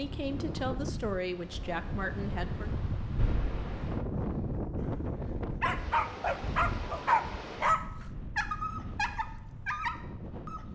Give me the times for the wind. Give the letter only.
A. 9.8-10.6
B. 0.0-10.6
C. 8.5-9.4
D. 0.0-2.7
B.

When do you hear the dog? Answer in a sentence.
You can hear the dog from 5.0 to 10.6 s.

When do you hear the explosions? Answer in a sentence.
You can hear the explosions from 3.1 to 4.0 s.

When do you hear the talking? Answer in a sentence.
You can hear the talking from 0.0 to 2.7 s.